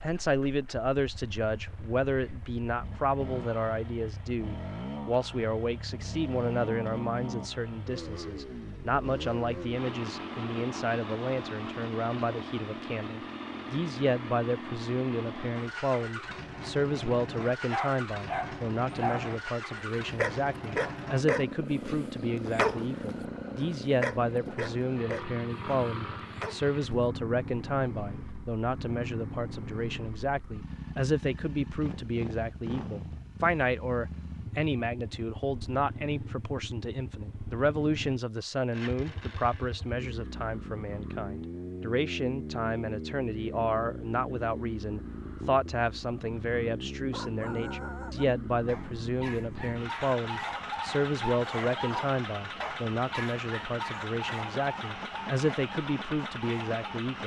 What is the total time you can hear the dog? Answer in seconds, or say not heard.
19 s.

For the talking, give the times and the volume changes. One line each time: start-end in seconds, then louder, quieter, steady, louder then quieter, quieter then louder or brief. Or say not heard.
0.0-57.2 steady.